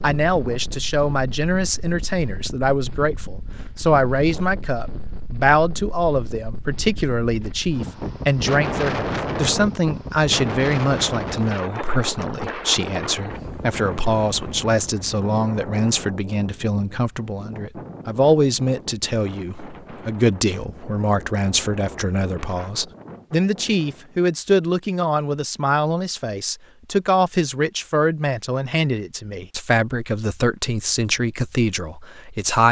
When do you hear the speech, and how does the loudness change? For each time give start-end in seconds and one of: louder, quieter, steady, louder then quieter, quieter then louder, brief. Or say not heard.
0.0-32.6 steady.